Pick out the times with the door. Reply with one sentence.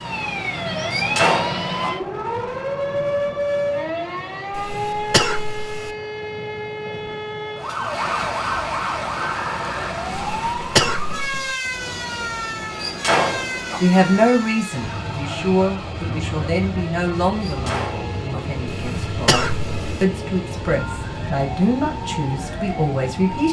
You can hear the door from 0.9 to 1.9 s, from 12.8 to 13.8 s and from 17.4 to 18.4 s.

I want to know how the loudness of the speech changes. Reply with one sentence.
The volume of the speech goes down, then up.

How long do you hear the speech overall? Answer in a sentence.
You can hear the speech for 10 seconds altogether.